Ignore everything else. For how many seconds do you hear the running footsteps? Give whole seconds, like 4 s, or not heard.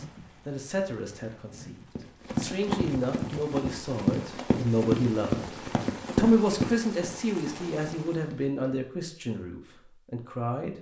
7 s.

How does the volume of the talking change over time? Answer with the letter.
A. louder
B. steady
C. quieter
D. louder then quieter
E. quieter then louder
D.